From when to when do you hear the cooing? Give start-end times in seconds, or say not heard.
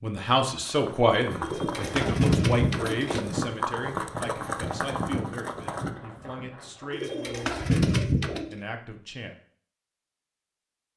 1.4-3.2, 6.9-8.6.